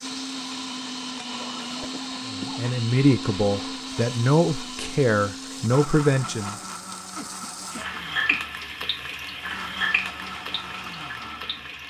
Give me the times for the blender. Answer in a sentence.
You can hear the blender from 0.0 to 11.7 s.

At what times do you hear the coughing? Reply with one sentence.
The coughing can be heard from 1.4 to 2.6 s and from 7.2 to 8.4 s.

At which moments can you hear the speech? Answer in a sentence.
You can hear the speech from 2.2 to 6.6 s.